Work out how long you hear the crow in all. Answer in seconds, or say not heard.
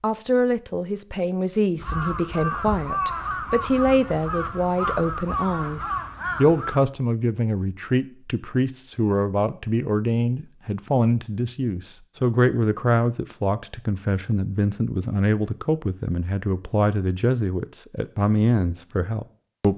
5 s.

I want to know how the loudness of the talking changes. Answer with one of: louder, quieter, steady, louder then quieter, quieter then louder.
steady.